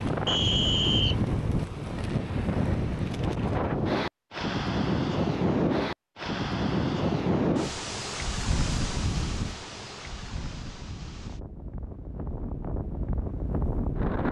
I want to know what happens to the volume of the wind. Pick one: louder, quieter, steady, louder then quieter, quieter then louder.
quieter.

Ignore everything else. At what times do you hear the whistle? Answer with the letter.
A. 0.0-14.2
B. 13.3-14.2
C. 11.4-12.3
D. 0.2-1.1
D.